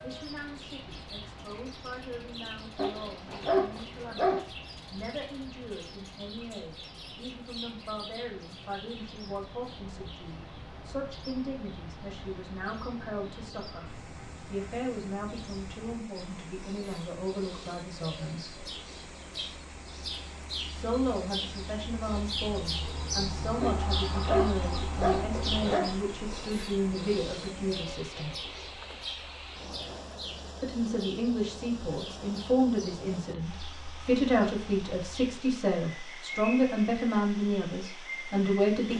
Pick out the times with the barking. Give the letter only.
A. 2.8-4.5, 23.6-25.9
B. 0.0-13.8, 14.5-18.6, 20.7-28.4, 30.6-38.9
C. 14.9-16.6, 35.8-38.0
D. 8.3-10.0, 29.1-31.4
A.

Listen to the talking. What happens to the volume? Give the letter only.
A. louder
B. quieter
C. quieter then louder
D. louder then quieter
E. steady
A.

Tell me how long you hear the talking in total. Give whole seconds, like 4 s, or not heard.
34 s.